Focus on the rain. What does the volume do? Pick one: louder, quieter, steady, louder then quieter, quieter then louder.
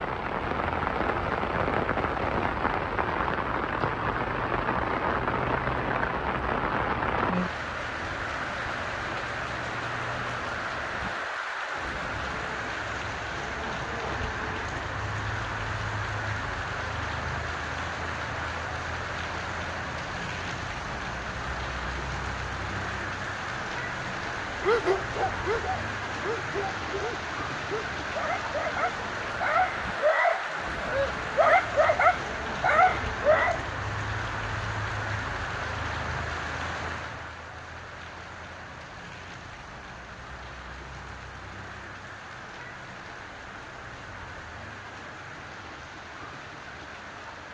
quieter.